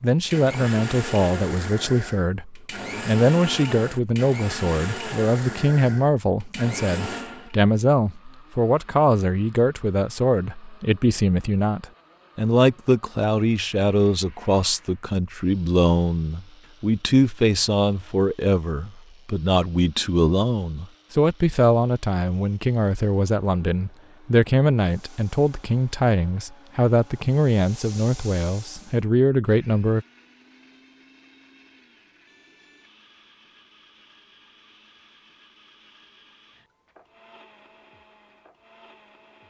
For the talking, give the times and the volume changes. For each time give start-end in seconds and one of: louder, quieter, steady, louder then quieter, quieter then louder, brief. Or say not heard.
0.0-30.1 steady.